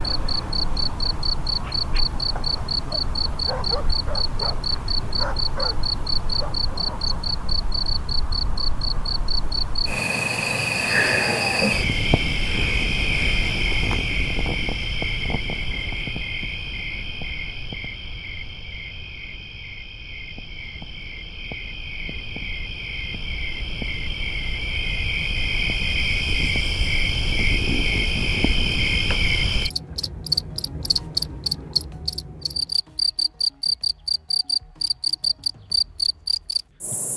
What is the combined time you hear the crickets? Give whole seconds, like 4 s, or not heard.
37 s.